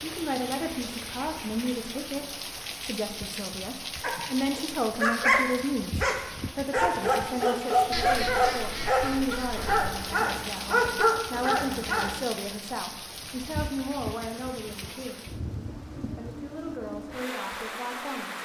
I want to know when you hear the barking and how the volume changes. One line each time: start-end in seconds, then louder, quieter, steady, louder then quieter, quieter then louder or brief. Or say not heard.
4.0-12.2 steady.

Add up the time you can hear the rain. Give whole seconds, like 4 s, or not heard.
18 s.